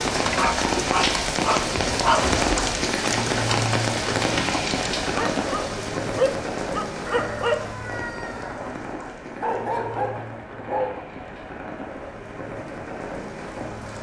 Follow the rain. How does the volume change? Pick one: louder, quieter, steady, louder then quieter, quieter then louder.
quieter.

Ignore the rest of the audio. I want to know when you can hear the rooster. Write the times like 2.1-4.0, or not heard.
7.0-8.7.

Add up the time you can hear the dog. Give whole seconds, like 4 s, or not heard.
7 s.